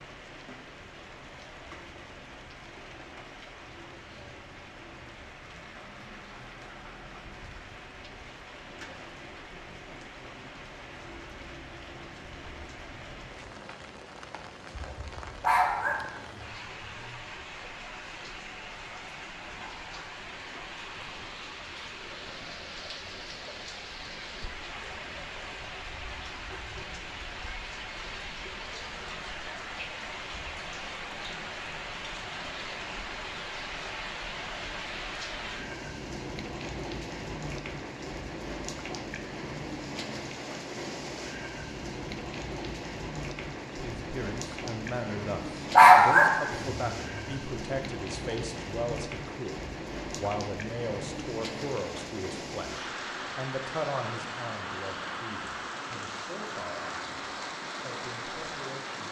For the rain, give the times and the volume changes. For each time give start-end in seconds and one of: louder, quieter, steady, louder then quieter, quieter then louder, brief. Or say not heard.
0.0-59.0 louder.